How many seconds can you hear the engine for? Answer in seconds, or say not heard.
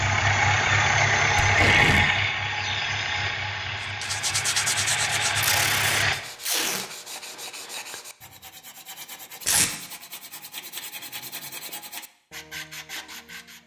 6 s.